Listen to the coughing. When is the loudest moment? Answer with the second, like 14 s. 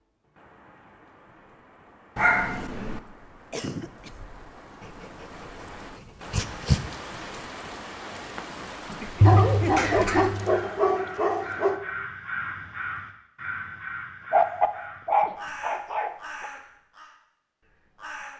10 s.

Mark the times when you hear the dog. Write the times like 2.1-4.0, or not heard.
2.1-3.0, 4.8-5.2, 6.3-6.8, 9.2-11.8, 14.3-16.5.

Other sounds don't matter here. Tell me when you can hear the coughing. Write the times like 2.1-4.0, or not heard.
3.5-4.1, 8.8-10.4, 14.2-15.4.